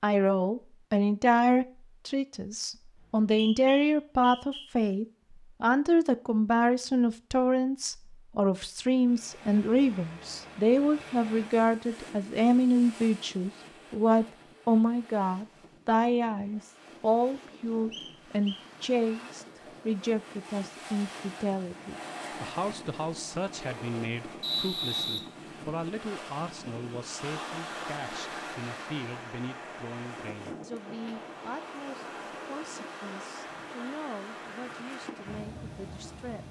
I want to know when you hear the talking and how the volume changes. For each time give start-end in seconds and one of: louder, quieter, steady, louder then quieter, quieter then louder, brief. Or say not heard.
0.0-36.4 quieter.